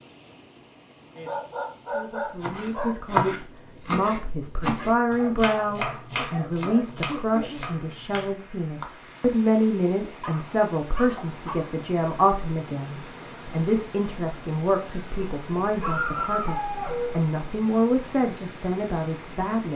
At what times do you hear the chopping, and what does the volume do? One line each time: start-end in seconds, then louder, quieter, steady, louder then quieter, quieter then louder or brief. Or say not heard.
2.4-8.9 quieter.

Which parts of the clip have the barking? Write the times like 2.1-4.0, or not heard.
1.1-3.0, 5.2-7.7, 10.2-11.7, 15.2-17.1.